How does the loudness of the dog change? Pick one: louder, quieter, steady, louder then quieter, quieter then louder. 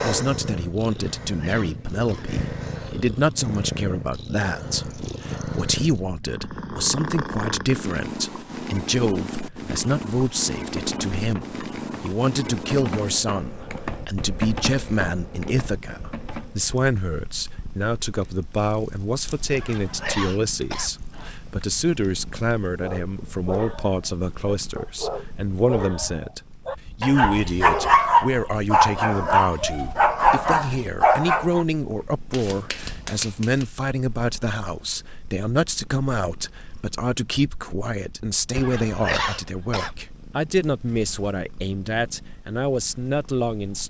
louder.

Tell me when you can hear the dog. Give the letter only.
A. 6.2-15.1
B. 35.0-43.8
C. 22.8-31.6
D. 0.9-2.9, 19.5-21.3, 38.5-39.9
C.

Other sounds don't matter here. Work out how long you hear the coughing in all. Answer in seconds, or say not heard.
5 s.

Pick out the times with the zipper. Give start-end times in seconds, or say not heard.
not heard.